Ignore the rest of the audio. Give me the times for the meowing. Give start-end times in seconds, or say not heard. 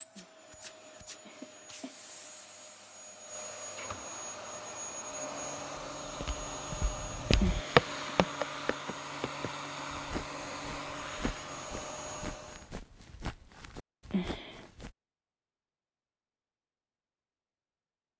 not heard.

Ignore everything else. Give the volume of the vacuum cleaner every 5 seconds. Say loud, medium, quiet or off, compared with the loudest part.
medium, loud, loud, off.